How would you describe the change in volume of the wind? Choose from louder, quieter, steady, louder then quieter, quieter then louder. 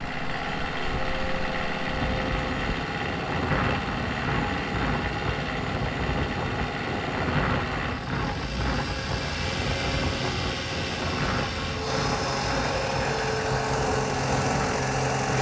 steady.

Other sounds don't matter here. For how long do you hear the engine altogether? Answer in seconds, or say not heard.
15 s.